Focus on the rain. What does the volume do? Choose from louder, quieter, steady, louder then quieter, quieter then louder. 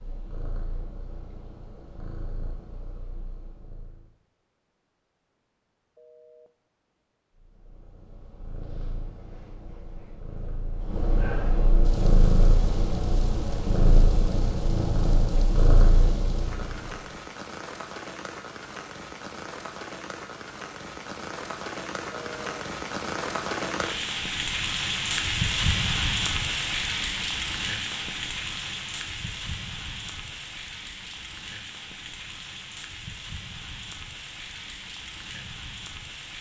louder then quieter.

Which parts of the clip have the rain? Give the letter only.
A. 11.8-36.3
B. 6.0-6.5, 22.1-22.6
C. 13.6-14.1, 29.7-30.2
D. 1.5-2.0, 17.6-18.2
A.